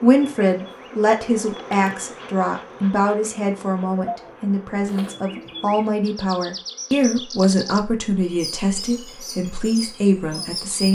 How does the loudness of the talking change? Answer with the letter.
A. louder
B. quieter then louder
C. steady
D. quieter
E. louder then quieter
C.